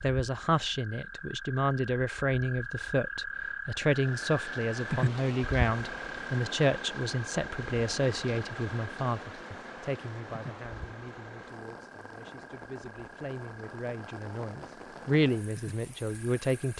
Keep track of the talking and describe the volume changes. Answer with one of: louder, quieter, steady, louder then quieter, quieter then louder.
quieter then louder.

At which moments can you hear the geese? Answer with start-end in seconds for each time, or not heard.
not heard.